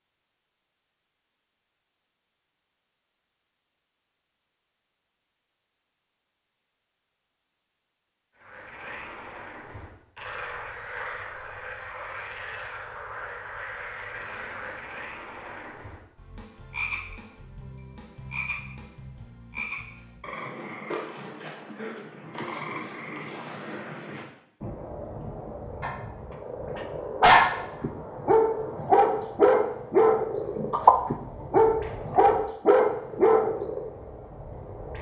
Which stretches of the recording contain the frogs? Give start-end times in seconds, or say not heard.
8.4-34.9.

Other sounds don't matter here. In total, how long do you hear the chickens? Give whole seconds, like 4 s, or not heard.
not heard.